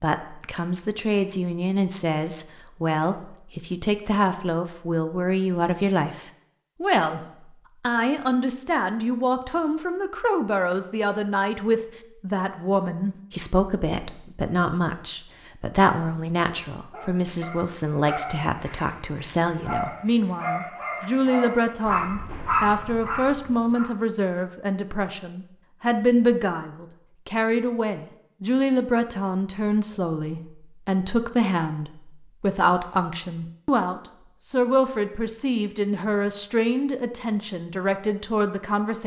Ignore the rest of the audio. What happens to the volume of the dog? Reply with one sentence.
The loudness of the dog goes up.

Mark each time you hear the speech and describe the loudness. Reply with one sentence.
You can hear the speech from 0.0 to 7.2 s, at a steady volume; and from 7.8 to 39.0 s, at a steady volume.